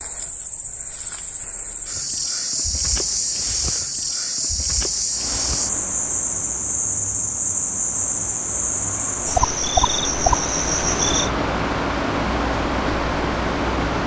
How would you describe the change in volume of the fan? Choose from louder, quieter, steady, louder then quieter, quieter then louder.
louder.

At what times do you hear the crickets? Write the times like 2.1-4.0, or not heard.
0.0-11.3.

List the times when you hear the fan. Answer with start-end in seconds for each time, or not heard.
5.1-14.0.